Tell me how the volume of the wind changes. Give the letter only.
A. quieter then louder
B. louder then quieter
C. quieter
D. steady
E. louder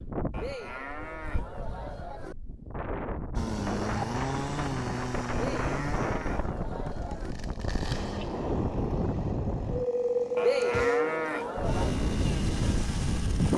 E.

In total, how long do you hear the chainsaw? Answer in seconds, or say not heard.
10 s.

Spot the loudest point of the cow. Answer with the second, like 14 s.
11 s.